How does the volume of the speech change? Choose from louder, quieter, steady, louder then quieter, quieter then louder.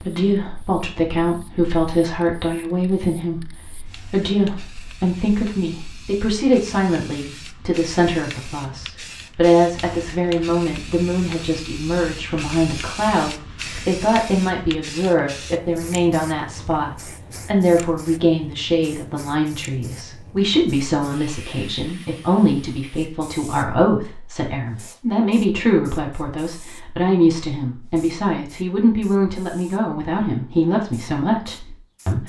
steady.